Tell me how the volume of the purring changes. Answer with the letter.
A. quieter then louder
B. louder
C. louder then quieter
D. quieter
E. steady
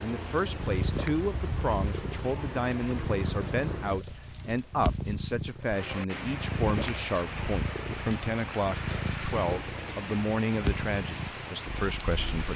E.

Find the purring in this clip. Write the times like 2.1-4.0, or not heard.
0.3-12.4.